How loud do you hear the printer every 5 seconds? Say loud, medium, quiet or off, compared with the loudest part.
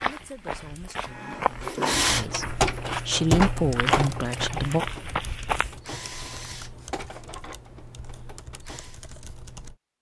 loud, quiet.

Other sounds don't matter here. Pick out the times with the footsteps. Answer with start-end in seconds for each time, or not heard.
0.0-5.8.